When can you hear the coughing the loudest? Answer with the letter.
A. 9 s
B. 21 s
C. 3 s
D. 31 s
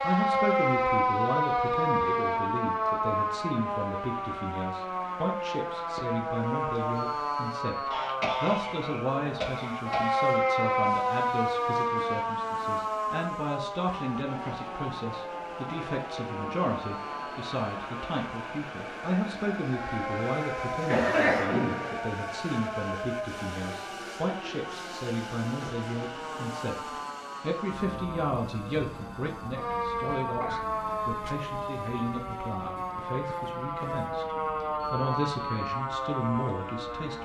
B.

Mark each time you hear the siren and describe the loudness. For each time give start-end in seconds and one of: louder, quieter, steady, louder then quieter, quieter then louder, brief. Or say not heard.
0.0-37.2 quieter then louder.